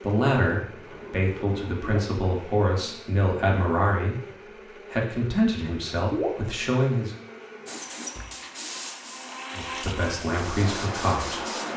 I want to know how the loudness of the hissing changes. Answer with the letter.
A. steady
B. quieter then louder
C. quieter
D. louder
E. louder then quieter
B.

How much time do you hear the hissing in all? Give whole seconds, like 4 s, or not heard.
4 s.